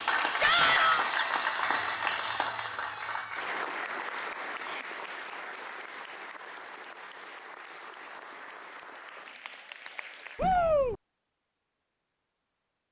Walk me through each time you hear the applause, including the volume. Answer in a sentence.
You can hear the applause from 0.0 to 10.6 s, getting quieter.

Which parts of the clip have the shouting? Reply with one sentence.
The shouting can be heard from 0.4 to 1.1 s, from 4.5 to 5.0 s and from 10.3 to 10.9 s.